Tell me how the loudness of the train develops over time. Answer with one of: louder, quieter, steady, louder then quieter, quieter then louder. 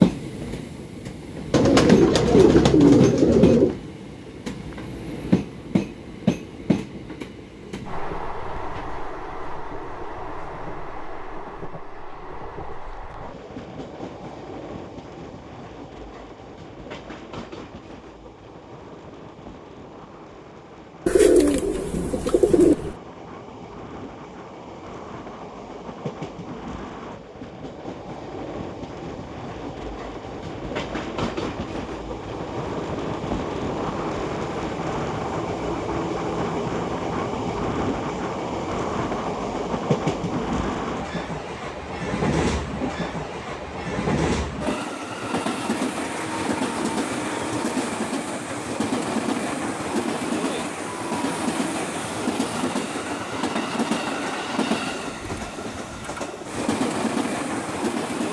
quieter then louder.